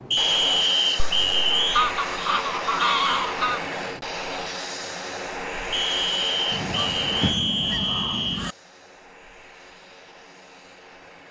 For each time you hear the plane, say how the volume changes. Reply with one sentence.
The plane can be heard from 0.0 to 11.2 s, getting quieter.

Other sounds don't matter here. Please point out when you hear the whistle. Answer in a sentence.
You can hear the whistle from 0.1 to 1.9 s and from 5.7 to 8.5 s.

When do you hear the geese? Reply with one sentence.
The geese can be heard from 0.9 to 3.6 s and from 6.5 to 8.6 s.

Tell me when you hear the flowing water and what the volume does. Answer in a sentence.
You can't hear the flowing water here.